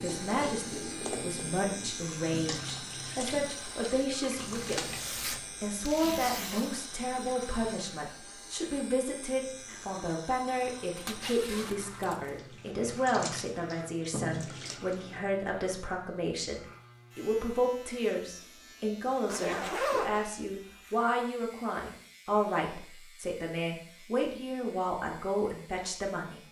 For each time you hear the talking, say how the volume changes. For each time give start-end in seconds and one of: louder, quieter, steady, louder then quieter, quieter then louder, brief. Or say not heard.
0.0-26.4 steady.